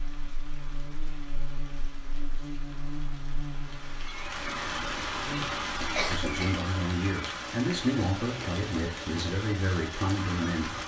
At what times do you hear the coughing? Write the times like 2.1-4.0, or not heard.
6.0-6.7.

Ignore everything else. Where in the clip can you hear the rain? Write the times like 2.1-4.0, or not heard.
0.0-10.8.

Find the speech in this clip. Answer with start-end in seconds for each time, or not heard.
6.1-10.7.